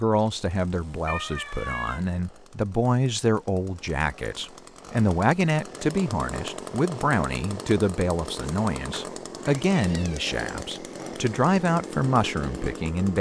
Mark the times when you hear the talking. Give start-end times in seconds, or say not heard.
0.0-13.1.